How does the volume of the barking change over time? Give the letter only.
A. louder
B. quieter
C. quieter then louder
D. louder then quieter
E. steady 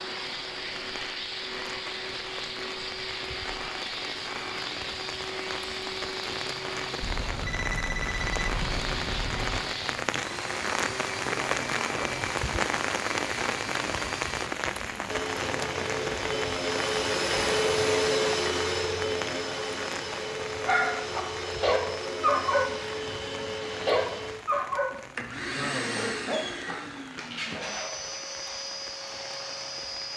B.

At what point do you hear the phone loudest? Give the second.
8 s.